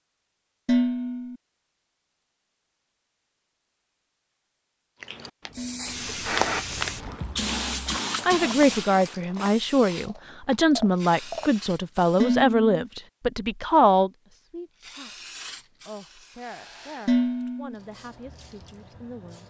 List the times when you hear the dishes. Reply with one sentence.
The dishes can be heard from 0.7 to 1.4 s, from 5.5 to 6.0 s, from 12.2 to 12.8 s and from 17.1 to 17.8 s.